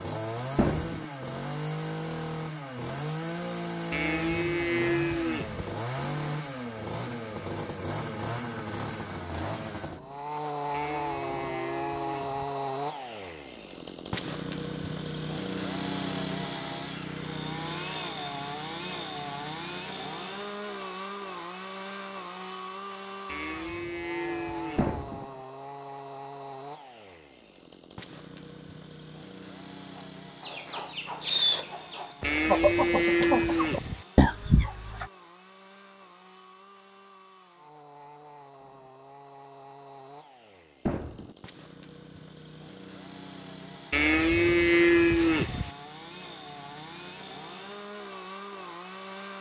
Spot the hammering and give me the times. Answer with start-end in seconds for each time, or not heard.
0.6-1.1, 24.8-25.2, 40.9-41.4.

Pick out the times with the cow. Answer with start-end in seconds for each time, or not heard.
3.9-5.7, 10.7-12.4, 23.2-24.9, 32.2-34.0, 43.9-45.7.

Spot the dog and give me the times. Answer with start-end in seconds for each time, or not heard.
not heard.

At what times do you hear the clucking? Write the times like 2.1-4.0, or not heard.
29.9-35.0.